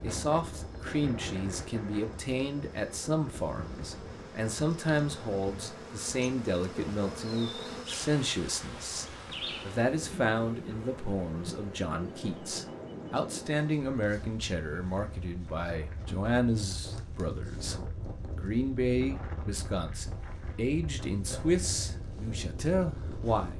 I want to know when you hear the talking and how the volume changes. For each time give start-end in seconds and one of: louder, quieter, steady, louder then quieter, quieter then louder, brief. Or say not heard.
0.0-9.1 steady
9.7-23.5 steady.